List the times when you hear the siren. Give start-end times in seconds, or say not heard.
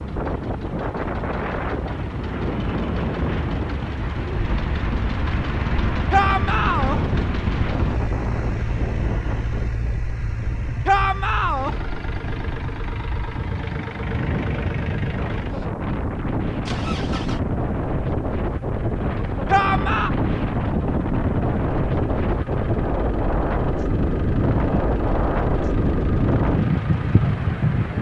not heard.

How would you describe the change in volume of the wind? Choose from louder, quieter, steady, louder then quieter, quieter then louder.
louder.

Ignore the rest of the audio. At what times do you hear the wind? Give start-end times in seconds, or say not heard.
0.0-27.9.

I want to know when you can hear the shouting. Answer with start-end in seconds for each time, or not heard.
6.1-7.0, 10.8-11.8, 19.4-20.1.